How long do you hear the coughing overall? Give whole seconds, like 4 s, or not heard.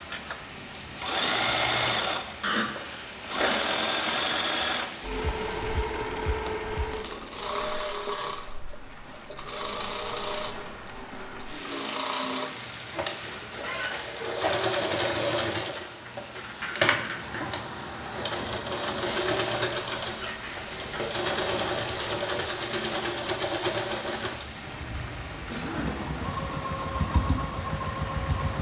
3 s.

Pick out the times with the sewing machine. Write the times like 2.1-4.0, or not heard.
0.0-28.5.